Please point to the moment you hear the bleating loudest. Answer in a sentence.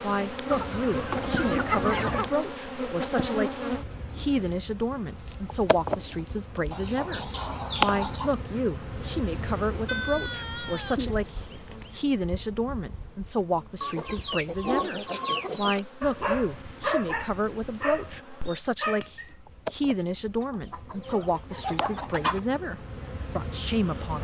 The loudest moment of the bleating is at 10 seconds.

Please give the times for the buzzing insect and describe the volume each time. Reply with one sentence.
You can hear the buzzing insect from 0.0 to 24.1 s, getting quieter then louder.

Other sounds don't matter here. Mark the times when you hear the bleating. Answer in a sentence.
You can hear the bleating from 9.8 to 12.0 s.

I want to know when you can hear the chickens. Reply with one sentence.
The chickens can be heard from 0.5 to 2.4 s, from 6.7 to 8.3 s, from 13.8 to 15.8 s and from 20.4 to 22.4 s.